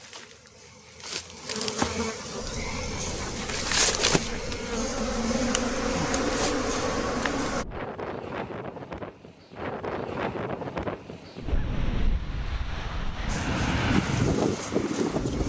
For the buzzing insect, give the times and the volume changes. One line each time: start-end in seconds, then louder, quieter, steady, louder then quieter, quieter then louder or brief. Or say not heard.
0.0-7.7 louder
13.2-15.4 brief.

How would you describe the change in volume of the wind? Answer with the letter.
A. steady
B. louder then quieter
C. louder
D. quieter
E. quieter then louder
C.